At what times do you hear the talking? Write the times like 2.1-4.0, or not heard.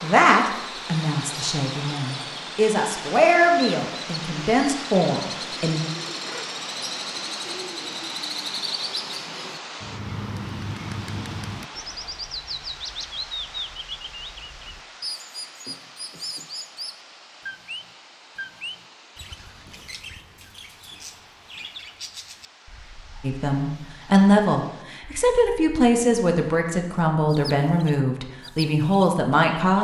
0.0-5.8, 23.2-29.7.